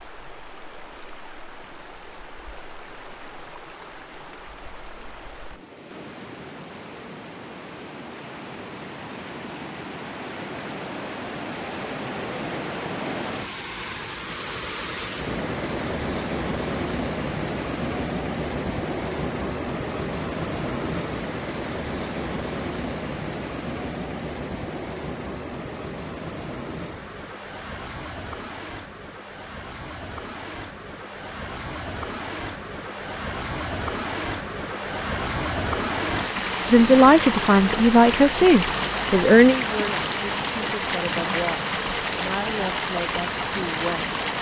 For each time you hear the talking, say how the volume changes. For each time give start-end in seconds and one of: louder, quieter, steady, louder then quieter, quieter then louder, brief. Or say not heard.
36.7-44.2 quieter.